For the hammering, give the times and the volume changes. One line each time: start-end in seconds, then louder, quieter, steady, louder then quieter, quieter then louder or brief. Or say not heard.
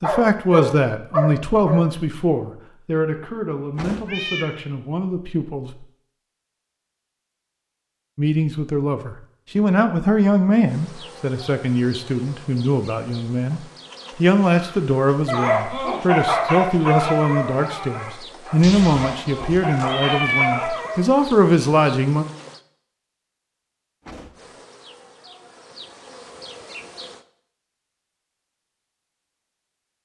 not heard.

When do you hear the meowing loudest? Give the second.
20 s.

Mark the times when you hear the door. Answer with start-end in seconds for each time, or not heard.
3.8-4.2, 24.0-24.6.